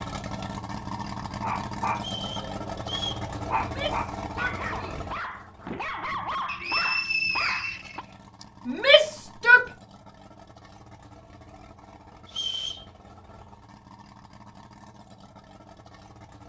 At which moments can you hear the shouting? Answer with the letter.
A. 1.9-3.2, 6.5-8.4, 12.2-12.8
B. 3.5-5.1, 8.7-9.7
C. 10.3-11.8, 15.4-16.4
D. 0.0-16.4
B.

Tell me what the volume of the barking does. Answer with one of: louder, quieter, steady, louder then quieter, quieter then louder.
steady.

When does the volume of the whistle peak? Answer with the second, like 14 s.
7 s.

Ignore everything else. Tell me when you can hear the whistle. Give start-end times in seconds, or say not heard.
1.9-3.2, 6.5-8.4, 12.2-12.8.